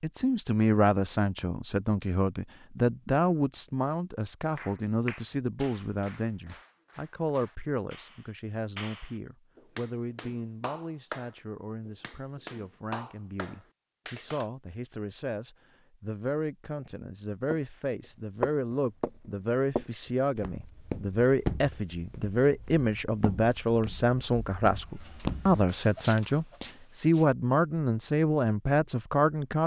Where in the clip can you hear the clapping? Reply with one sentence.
The clapping can be heard from 4.5 to 14.5 s.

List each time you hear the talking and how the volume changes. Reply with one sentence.
You can hear the talking from 0.0 to 29.6 s, getting quieter then louder.